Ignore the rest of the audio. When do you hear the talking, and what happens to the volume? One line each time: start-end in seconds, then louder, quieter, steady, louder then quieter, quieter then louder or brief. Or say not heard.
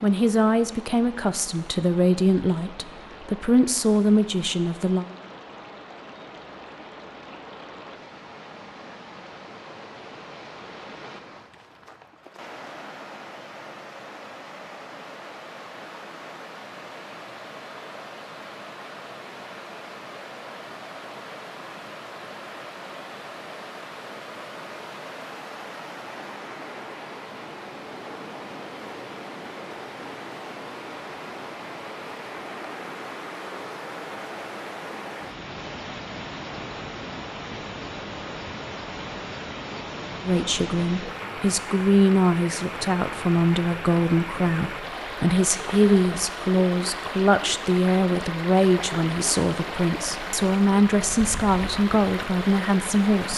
0.0-5.0 steady
40.2-53.3 steady.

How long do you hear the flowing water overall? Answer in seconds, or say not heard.
53 s.